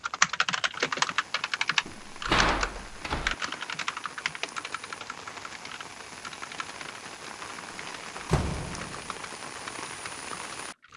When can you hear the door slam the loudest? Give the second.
2 s.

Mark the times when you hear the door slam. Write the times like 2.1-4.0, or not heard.
1.9-3.4, 7.8-9.1.